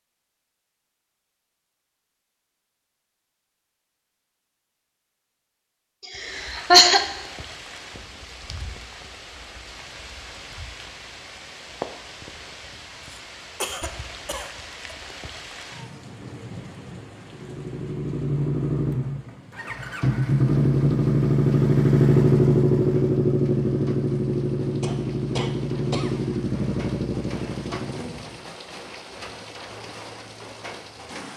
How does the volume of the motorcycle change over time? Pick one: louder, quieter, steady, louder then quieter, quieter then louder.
louder then quieter.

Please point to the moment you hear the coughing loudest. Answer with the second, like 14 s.
7 s.